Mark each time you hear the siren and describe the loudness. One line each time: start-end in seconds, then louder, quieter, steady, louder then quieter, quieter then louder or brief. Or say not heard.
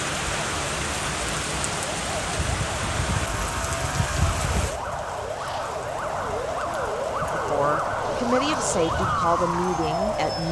0.0-10.4 louder.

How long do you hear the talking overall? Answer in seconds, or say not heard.
3 s.